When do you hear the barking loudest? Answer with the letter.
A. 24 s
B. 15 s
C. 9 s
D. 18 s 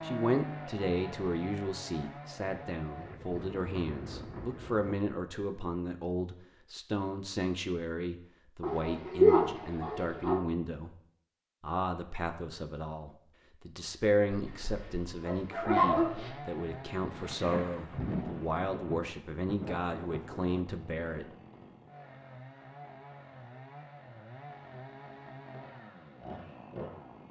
C.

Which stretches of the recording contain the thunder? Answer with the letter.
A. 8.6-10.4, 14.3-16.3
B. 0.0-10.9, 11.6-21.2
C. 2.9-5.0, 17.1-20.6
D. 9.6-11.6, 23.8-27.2
C.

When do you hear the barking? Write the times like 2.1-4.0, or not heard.
8.6-10.4, 14.3-16.3.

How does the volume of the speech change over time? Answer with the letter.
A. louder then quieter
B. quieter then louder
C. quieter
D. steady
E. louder
D.